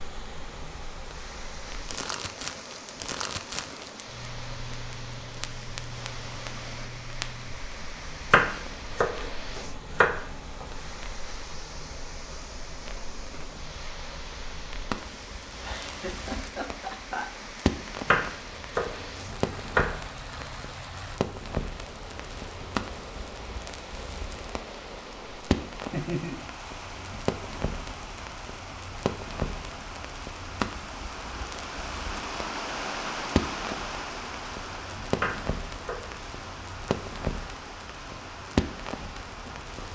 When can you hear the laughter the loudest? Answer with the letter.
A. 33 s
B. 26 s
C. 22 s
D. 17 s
B.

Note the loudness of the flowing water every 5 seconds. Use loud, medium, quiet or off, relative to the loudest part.
medium, medium, medium, medium, medium, medium, loud, medium.